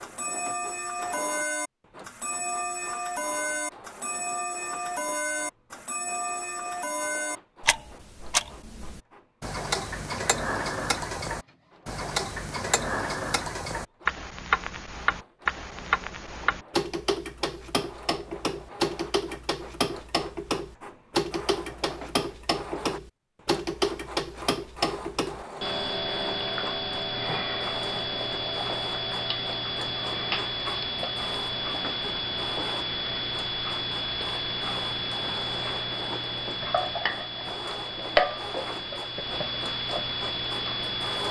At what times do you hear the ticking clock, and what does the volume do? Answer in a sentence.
You can hear the ticking clock from 0.0 to 41.2 s, at a steady volume.